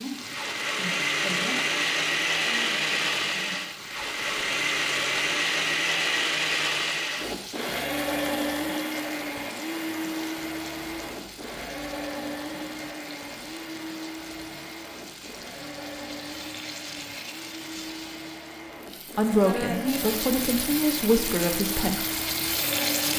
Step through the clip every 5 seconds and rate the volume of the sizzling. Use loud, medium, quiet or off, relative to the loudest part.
medium, medium, quiet, medium, loud.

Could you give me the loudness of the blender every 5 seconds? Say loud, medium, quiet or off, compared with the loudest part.
loud, loud, medium, quiet, medium.